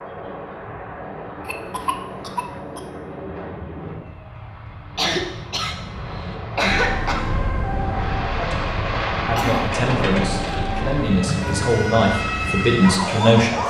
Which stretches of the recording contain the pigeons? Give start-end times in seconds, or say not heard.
not heard.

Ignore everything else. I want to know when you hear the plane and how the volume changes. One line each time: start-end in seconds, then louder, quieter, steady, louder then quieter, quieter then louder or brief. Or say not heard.
0.0-13.6 louder then quieter.